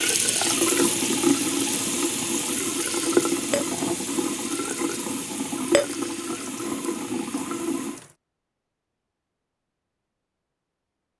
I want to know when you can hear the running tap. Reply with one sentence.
The running tap can be heard from 0.0 to 8.2 s.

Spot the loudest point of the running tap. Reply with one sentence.
The loudest moment of the running tap is at 1 second.